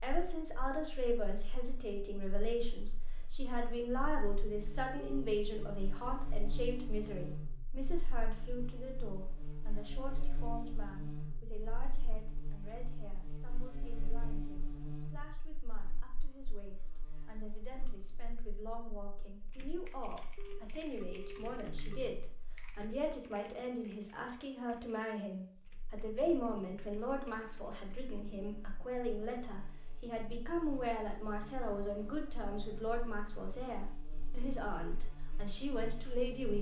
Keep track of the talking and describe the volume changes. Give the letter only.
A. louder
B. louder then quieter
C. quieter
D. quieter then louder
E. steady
D.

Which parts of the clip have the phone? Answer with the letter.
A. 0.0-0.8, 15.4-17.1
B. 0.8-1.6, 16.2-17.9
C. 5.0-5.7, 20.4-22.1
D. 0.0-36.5
C.